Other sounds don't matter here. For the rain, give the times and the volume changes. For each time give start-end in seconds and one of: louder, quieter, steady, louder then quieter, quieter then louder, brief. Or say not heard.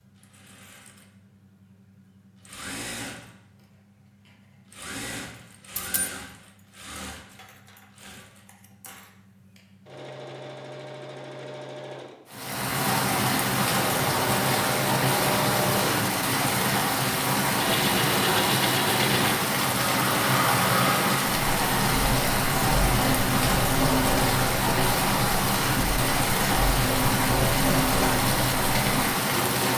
12.2-29.7 steady.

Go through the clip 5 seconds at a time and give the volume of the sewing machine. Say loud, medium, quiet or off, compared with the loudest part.
quiet, quiet, medium, loud, loud, loud.